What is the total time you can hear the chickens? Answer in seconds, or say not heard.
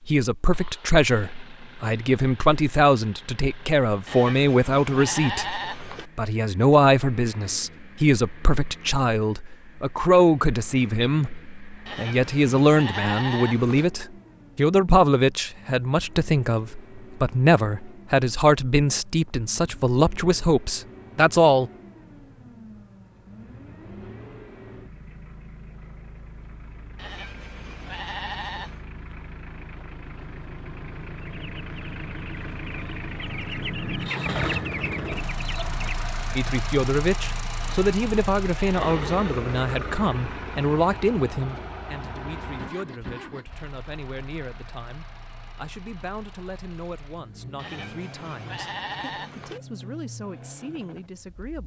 5 s.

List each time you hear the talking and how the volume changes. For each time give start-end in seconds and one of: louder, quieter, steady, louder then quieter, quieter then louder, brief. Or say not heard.
0.1-21.7 steady
36.4-51.6 quieter.